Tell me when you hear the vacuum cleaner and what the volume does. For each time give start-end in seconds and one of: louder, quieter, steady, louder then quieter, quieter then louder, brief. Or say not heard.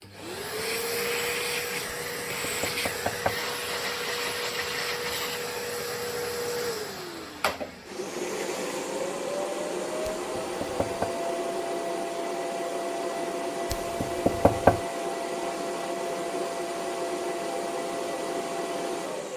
0.0-19.3 steady.